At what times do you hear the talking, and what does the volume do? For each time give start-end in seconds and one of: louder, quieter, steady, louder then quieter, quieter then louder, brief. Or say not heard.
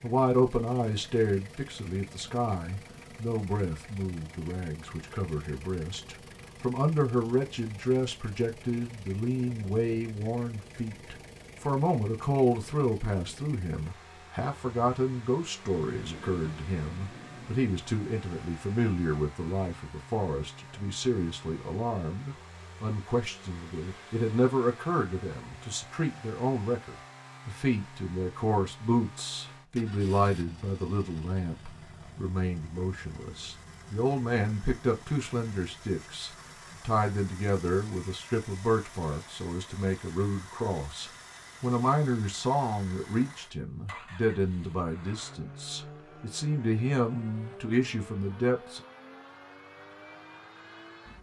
0.0-48.8 steady.